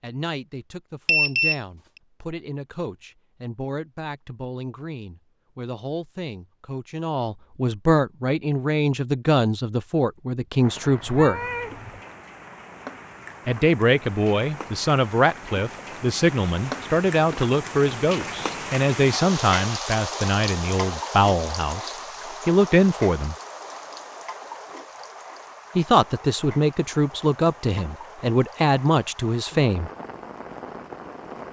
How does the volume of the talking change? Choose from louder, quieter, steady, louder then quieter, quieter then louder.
louder.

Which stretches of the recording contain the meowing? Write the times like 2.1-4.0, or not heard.
11.0-12.0.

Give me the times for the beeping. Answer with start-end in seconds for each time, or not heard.
1.1-1.6.